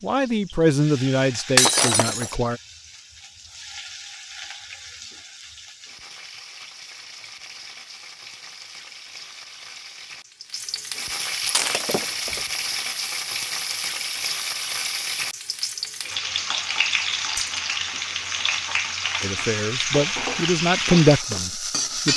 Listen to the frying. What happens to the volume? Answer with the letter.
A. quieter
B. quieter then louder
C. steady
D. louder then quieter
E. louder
E.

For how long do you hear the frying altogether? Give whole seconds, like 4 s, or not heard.
22 s.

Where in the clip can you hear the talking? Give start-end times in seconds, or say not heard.
0.0-2.6, 19.2-22.1.